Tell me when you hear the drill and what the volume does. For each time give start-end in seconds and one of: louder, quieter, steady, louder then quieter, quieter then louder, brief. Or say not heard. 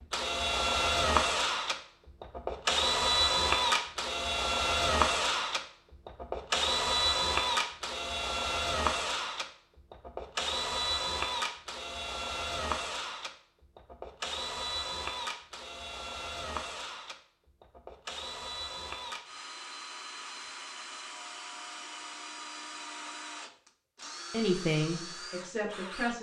0.0-26.1 quieter.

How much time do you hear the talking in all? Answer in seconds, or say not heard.
2 s.